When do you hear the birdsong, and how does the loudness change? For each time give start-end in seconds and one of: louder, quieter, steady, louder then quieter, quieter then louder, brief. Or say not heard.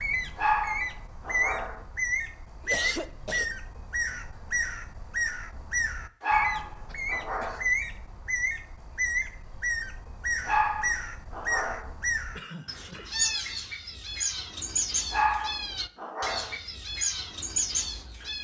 0.0-18.4 steady.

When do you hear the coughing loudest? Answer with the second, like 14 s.
3 s.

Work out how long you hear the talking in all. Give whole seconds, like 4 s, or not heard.
not heard.